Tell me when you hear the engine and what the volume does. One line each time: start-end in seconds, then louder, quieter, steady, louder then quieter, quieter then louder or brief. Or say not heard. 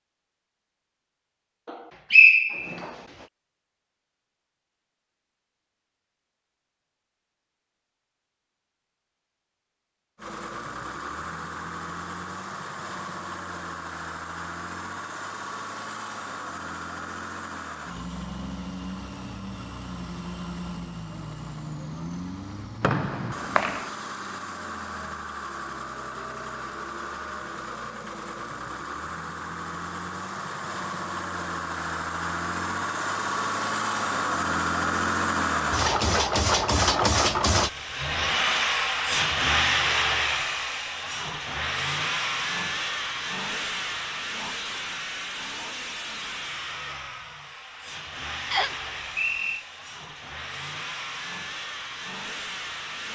10.2-53.0 louder then quieter.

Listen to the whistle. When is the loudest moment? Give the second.
2 s.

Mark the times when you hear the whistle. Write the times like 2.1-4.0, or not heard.
1.6-2.9, 22.8-23.9, 48.5-49.6.